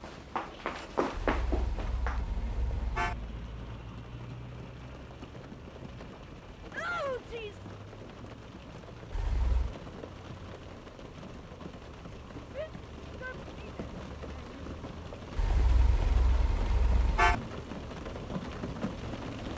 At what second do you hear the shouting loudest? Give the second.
7 s.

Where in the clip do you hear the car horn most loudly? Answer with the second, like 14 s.
17 s.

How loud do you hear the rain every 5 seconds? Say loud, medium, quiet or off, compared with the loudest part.
medium, medium, medium, loud.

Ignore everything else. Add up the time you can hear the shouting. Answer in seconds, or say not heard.
3 s.